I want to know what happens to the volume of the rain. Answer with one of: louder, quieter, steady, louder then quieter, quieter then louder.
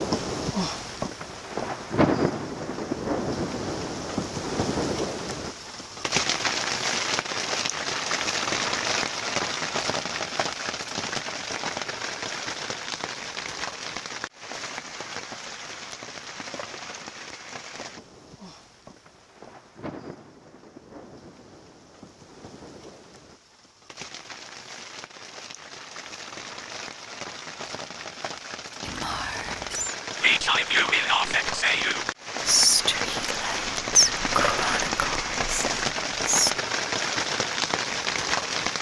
quieter then louder.